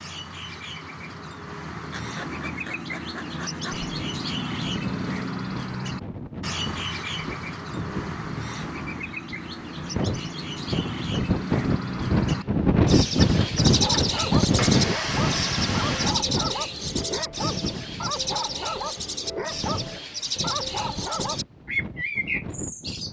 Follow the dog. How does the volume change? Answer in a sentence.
The volume of the dog stays about the same.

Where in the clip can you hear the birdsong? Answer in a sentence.
You can hear the birdsong from 0.0 to 23.0 s.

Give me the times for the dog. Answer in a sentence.
You can hear the dog from 13.8 to 21.4 s.